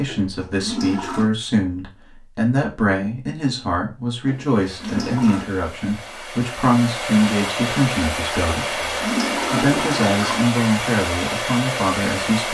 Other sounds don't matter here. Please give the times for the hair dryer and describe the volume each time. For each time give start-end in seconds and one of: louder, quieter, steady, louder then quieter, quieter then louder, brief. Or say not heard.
4.5-12.4 louder.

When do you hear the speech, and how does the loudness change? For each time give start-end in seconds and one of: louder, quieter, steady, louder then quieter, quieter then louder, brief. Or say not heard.
0.0-12.4 steady.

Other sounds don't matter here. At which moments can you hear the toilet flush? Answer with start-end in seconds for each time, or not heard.
0.0-1.3, 4.2-5.5, 8.7-10.6.